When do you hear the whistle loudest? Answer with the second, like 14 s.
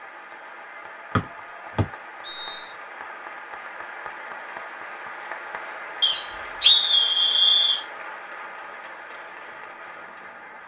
7 s.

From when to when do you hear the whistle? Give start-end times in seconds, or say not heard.
1.1-2.6, 6.0-7.8.